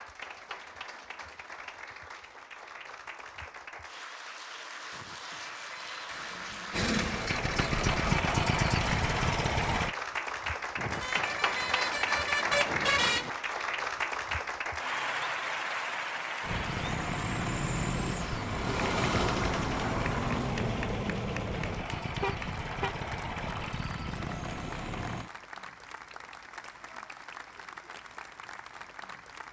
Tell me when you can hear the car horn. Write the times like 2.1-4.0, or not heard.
4.9-6.2, 10.8-13.3, 22.2-22.9.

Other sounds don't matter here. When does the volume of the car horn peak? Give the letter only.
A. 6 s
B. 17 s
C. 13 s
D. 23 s
C.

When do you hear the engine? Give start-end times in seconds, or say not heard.
6.0-9.9, 16.4-25.3.